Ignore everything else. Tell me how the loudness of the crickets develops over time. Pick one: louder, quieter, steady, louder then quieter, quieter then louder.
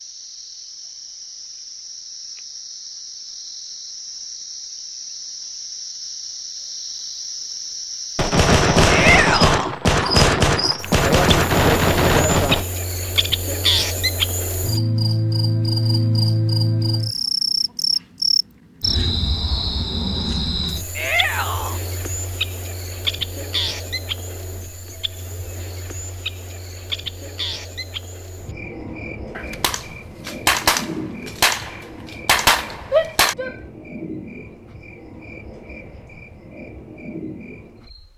louder then quieter.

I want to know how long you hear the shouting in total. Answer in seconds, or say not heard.
2 s.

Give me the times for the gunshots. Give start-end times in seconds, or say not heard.
8.2-12.7, 29.4-33.4.